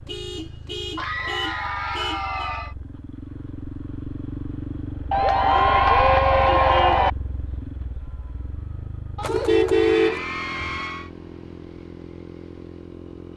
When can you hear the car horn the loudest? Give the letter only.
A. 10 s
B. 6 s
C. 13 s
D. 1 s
A.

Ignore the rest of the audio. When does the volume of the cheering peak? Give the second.
6 s.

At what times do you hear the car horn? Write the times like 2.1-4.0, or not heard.
0.1-2.5, 6.6-7.0, 9.2-10.8.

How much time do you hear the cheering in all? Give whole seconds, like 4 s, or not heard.
6 s.